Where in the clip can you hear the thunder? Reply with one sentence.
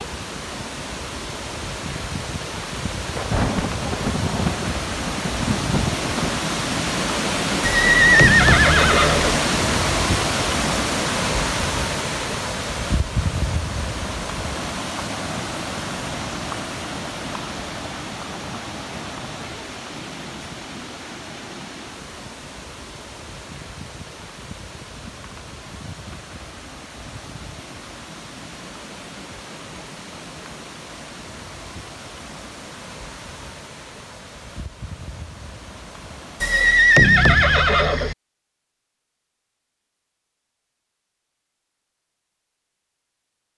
The thunder can be heard from 3.0 to 6.4 s.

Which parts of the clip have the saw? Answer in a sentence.
You can't hear the saw here.